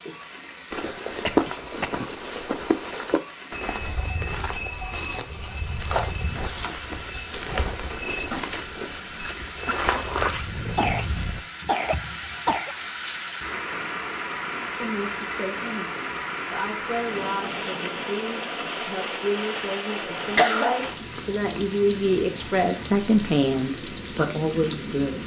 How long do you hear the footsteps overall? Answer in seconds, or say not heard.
11 s.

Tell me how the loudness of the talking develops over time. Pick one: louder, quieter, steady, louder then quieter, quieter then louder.
louder.